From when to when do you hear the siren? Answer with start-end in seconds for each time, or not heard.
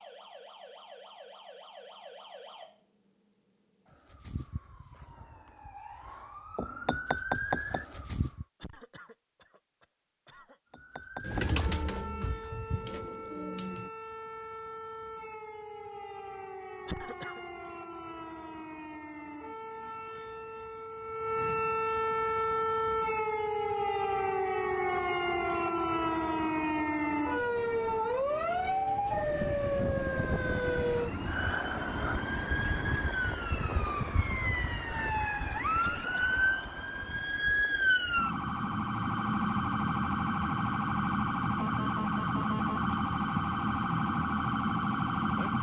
0.0-8.4, 10.7-45.5.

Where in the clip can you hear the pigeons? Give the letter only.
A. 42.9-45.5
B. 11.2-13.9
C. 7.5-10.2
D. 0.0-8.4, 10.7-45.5
B.